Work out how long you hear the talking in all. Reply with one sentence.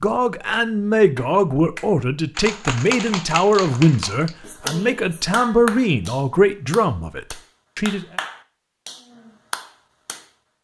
The talking can be heard for 8 seconds in total.